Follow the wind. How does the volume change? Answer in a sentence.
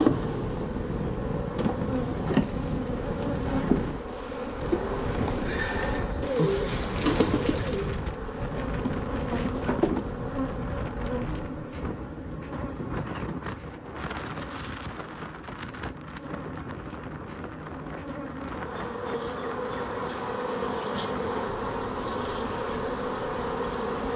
The volume of the wind goes down.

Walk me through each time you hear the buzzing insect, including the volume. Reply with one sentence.
You can hear the buzzing insect from 0.0 to 24.1 s, getting quieter then louder.